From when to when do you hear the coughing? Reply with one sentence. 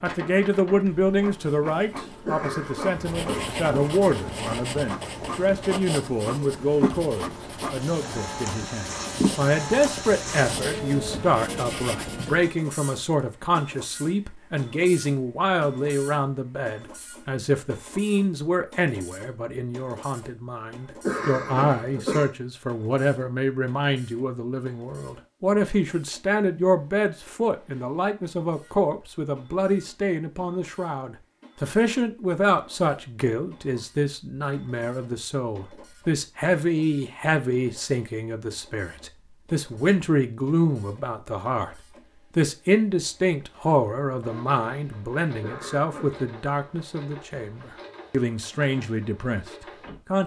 You can hear the coughing from 2.2 to 4.0 s, from 21.0 to 22.4 s and from 45.4 to 46.2 s.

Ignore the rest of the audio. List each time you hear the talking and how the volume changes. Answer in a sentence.
The talking can be heard from 0.0 to 50.2 s, at a steady volume.